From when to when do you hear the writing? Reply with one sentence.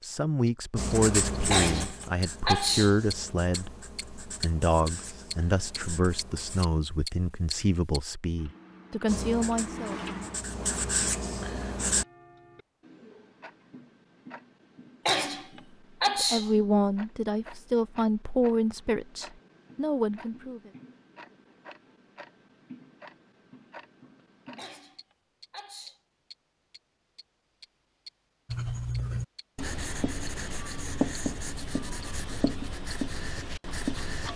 The writing can be heard from 0.8 to 6.7 s, from 9.1 to 12.1 s and from 28.4 to 34.3 s.